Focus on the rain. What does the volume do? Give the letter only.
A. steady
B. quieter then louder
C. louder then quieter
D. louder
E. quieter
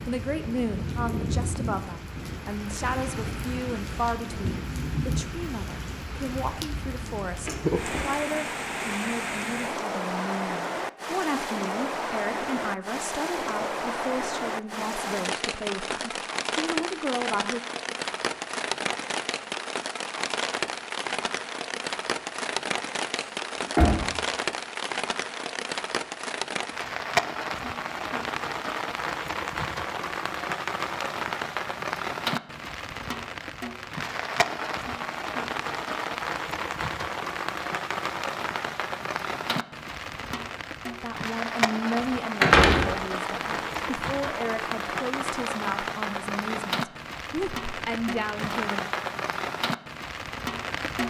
A.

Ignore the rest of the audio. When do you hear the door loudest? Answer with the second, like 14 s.
43 s.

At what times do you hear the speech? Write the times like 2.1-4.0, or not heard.
0.1-17.6, 41.0-48.9.